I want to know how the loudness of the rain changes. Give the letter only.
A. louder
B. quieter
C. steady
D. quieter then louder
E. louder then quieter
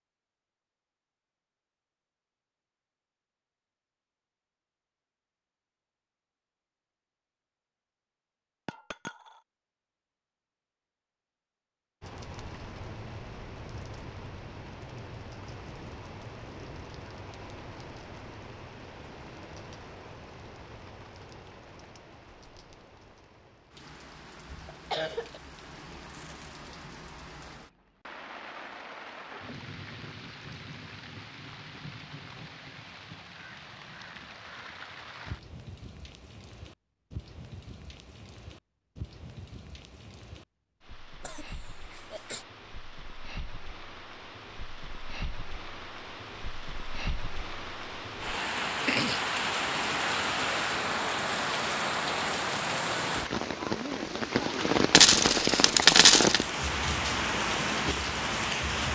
A.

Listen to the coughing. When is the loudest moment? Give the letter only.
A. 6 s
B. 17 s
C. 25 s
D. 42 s
C.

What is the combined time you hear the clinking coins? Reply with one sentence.
The clinking coins can be heard for 3 seconds in total.